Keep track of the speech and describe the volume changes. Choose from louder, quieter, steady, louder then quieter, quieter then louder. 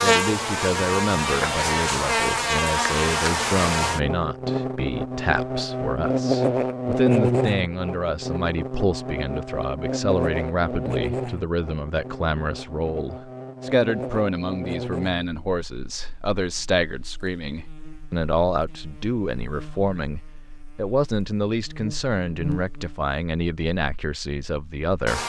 steady.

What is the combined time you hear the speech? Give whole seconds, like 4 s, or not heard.
25 s.